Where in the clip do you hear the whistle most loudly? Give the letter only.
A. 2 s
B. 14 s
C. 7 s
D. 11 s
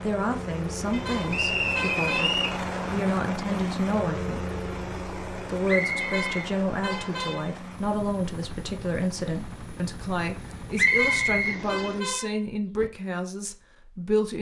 D.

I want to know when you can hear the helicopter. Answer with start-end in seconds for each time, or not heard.
0.0-12.0.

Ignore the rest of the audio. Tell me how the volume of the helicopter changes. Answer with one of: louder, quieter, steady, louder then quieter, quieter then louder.
quieter.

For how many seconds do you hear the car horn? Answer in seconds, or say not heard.
5 s.